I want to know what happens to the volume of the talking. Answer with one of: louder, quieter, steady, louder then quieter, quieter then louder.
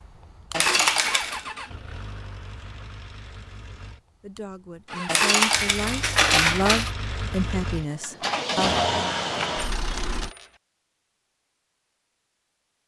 louder then quieter.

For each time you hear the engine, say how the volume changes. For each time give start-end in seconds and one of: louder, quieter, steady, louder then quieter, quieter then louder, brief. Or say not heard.
0.0-10.3 quieter then louder.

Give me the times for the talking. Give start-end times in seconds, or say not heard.
4.2-8.8.